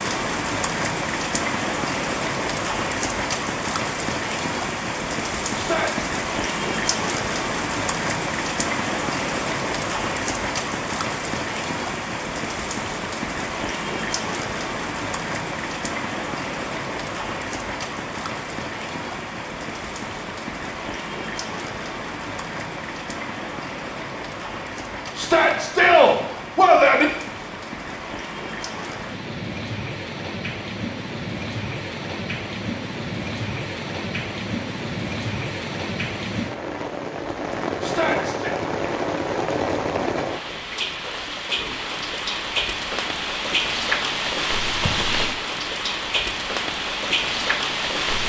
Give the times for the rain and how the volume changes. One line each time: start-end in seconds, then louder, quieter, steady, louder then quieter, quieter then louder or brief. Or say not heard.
0.0-48.2 quieter then louder.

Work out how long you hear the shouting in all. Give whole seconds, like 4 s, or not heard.
3 s.